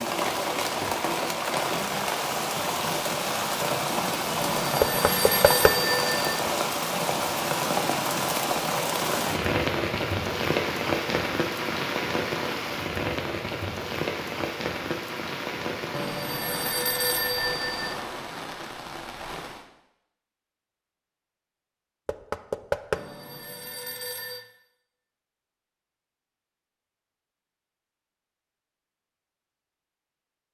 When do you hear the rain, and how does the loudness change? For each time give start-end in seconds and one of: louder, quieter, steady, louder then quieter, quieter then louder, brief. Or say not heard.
0.0-19.6 quieter.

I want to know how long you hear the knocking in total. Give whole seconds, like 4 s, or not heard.
2 s.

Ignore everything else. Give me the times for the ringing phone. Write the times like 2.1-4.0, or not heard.
4.4-6.4, 15.9-17.9, 22.9-24.4.